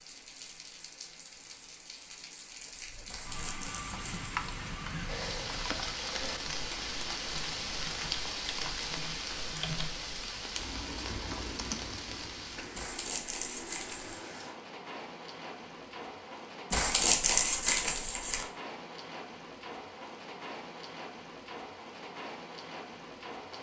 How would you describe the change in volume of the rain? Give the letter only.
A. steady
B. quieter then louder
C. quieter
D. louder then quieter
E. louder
D.